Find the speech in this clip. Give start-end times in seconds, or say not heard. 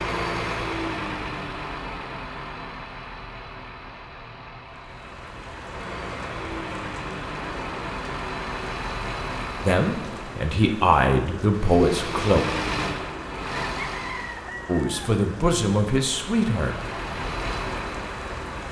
9.7-12.4, 14.7-16.8.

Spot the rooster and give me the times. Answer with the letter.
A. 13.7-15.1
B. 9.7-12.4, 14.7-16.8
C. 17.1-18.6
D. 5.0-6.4
A.